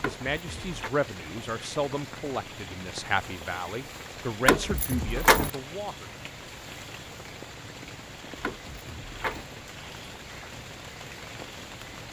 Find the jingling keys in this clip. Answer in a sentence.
You can hear the jingling keys from 0.0 to 0.9 s, from 4.5 to 5.5 s and from 8.4 to 9.5 s.